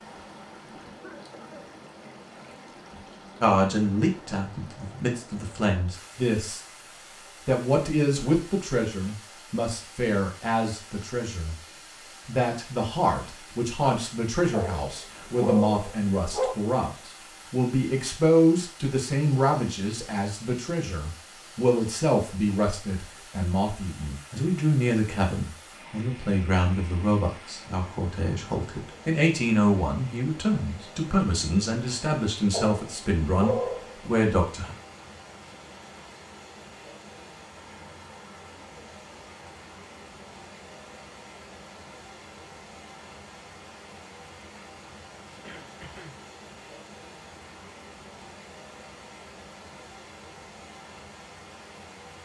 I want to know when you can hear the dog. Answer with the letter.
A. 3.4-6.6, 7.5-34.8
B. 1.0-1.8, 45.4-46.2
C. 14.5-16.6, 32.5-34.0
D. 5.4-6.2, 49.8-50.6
C.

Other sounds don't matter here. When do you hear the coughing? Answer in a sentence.
The coughing can be heard from 1.0 to 1.8 s and from 45.4 to 46.2 s.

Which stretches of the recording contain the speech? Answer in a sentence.
You can hear the speech from 3.4 to 6.6 s and from 7.5 to 34.8 s.